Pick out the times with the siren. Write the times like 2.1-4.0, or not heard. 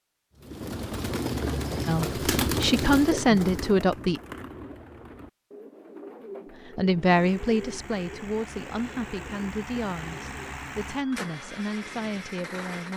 not heard.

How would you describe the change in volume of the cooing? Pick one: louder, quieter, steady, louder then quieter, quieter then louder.
quieter.